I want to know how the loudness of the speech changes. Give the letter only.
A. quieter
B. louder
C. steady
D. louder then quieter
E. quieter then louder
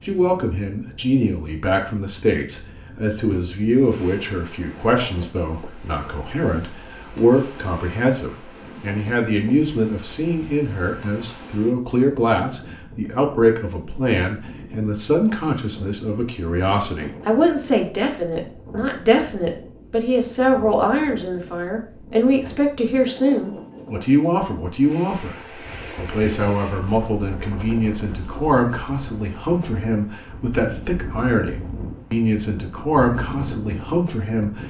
C.